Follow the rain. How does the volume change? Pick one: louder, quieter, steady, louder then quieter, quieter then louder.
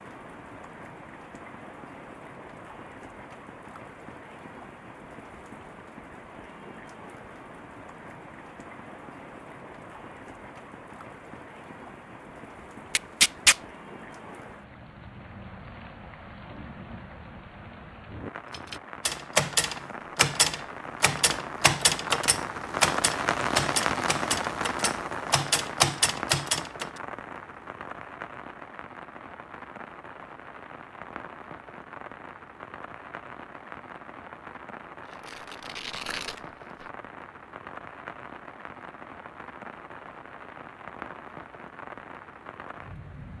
louder then quieter.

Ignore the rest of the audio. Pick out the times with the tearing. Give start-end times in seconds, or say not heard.
12.9-13.6, 35.1-36.9.